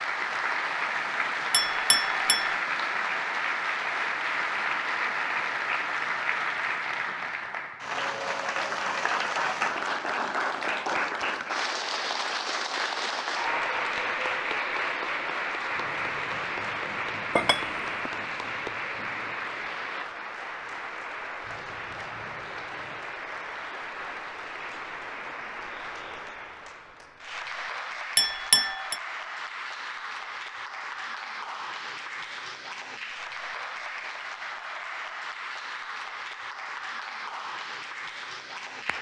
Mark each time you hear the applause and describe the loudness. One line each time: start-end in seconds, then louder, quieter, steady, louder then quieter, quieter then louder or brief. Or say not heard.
0.0-38.9 quieter.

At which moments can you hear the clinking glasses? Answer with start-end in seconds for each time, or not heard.
1.5-2.5, 17.4-18.1, 28.1-28.9.